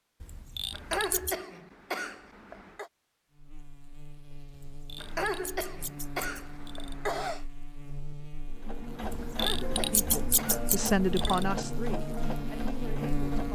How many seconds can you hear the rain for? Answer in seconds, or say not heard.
not heard.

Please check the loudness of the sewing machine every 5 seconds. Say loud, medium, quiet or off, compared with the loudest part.
off, loud, loud.